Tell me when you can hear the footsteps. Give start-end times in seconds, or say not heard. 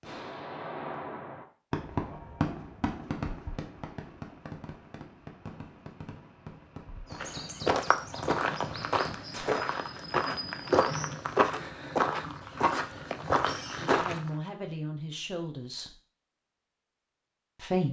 7.1-14.3.